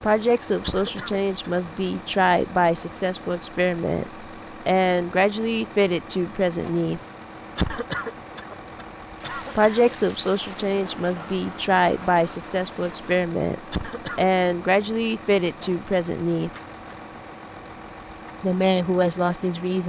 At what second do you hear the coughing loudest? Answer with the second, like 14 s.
8 s.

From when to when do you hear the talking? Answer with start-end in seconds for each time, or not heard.
0.0-7.0, 9.6-16.5, 18.4-19.8.